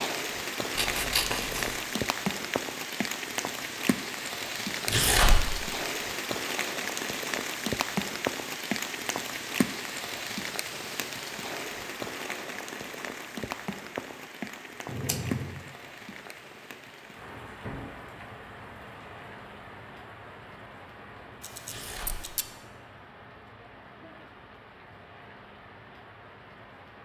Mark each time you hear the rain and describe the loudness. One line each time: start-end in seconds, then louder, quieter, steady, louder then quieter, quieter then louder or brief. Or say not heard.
0.0-27.0 quieter.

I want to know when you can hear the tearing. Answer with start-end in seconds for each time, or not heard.
4.8-5.5, 21.6-22.3.